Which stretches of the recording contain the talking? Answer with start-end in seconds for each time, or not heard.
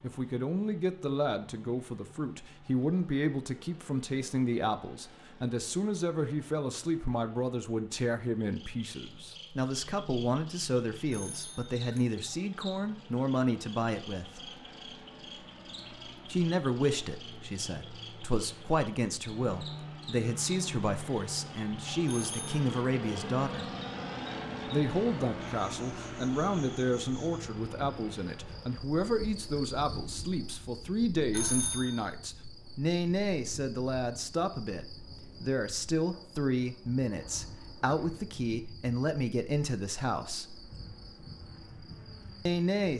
0.0-14.4, 16.2-23.6, 24.6-40.5, 42.5-42.9.